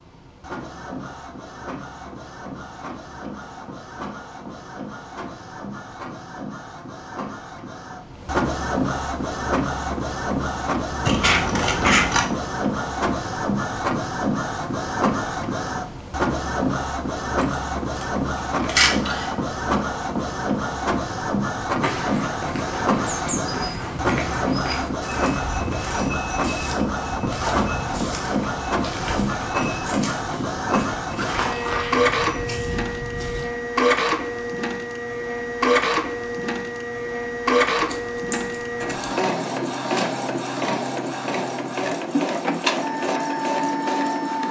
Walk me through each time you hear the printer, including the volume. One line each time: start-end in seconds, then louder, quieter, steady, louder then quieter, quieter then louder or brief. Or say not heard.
0.0-44.4 louder.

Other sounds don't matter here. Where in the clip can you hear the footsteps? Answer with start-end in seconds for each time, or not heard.
21.8-33.5.